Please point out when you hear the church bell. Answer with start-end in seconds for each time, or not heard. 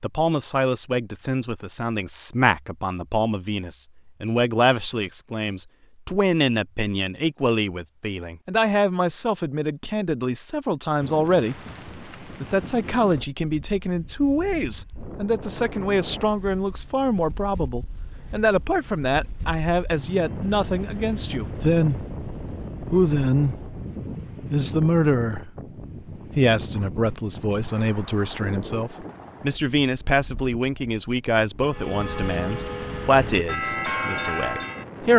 31.6-34.9.